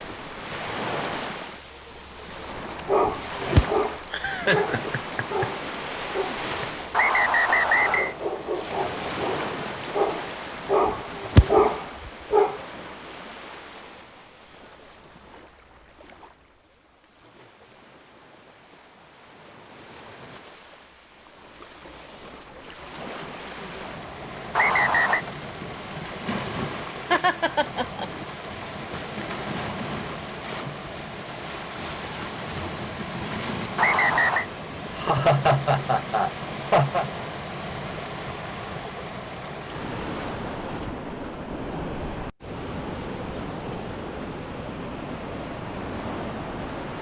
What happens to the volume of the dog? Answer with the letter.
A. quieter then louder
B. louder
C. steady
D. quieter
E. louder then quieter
A.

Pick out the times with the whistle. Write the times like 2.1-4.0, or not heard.
6.9-8.2, 24.6-25.2, 33.8-34.5.